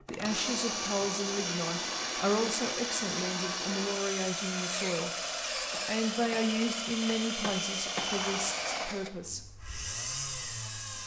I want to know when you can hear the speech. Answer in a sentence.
You can hear the speech from 0.1 to 5.1 s and from 5.8 to 9.4 s.